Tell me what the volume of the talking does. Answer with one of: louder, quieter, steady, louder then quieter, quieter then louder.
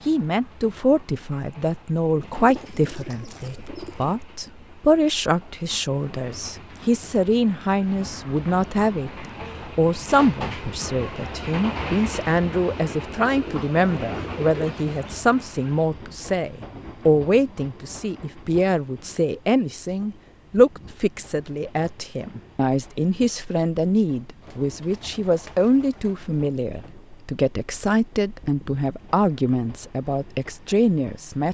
steady.